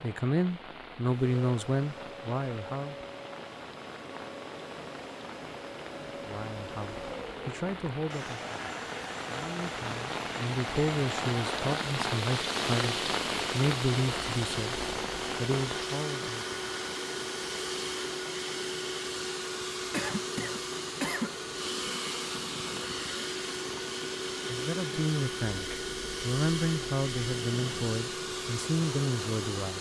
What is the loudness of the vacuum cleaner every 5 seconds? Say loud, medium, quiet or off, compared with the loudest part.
medium, medium, loud, loud, loud, loud.